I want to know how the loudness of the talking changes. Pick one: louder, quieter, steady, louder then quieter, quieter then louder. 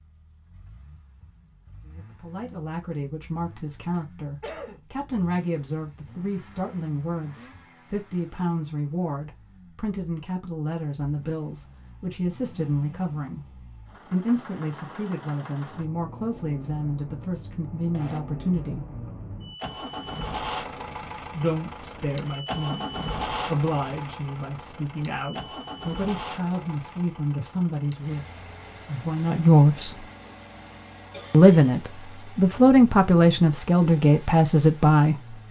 louder.